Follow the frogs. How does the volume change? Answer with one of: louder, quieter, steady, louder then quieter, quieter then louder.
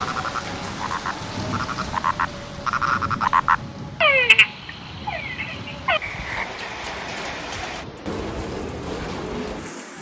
louder then quieter.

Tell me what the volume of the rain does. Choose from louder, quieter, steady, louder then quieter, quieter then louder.
quieter then louder.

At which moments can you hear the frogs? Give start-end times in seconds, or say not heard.
0.0-6.5.